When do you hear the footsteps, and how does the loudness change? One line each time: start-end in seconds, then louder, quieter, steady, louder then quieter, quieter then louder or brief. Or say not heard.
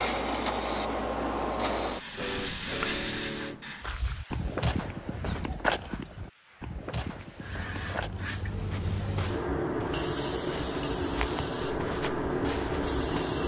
3.8-13.2 quieter then louder.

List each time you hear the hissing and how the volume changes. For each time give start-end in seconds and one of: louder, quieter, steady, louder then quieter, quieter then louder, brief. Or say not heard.
0.0-13.4 quieter then louder.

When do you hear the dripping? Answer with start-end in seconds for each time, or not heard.
not heard.